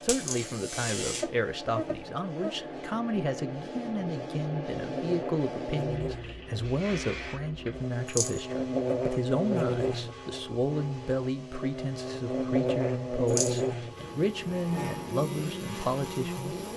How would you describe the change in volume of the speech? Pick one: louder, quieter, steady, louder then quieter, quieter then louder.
steady.